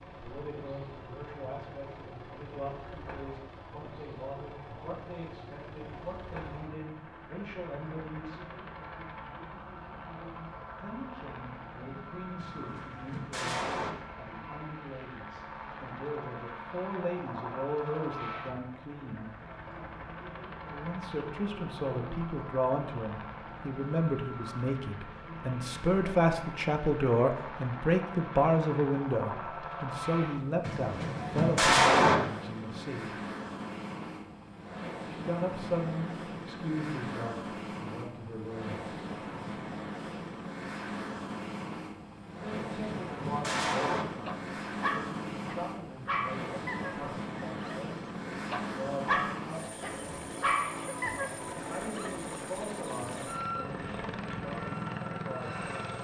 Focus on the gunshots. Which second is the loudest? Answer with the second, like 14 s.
32 s.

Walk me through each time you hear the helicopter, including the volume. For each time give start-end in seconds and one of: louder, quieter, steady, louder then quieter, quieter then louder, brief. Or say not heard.
0.0-55.9 louder.